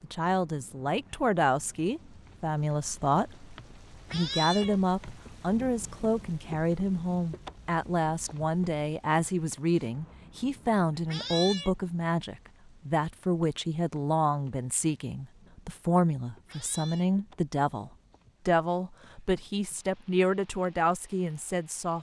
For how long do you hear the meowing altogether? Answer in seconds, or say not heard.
2 s.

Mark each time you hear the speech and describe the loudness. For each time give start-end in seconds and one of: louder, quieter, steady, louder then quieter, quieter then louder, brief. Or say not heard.
0.0-21.9 steady.